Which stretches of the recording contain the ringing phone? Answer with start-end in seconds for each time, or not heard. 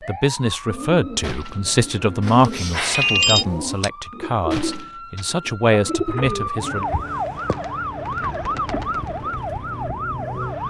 2.2-3.9.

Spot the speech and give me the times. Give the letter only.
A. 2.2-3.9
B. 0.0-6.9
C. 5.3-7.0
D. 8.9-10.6
B.